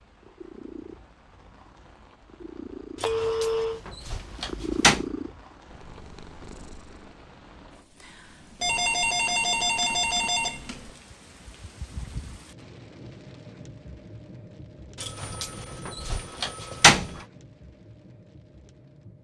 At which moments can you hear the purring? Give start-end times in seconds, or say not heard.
0.0-7.2.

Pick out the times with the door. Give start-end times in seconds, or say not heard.
3.0-5.0, 14.9-17.2.